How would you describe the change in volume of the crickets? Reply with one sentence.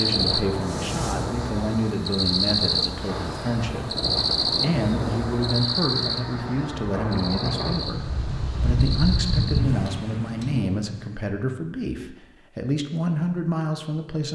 The loudness of the crickets goes up, then down.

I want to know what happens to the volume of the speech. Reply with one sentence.
The loudness of the speech stays about the same.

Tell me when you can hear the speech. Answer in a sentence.
The speech can be heard from 0.0 to 14.3 s.